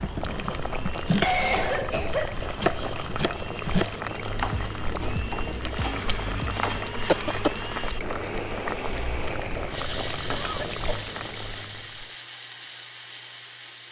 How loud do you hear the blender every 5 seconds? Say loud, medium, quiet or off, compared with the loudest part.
medium, loud, loud.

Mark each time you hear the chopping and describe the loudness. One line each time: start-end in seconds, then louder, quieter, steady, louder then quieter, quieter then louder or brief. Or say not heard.
0.0-6.8 quieter.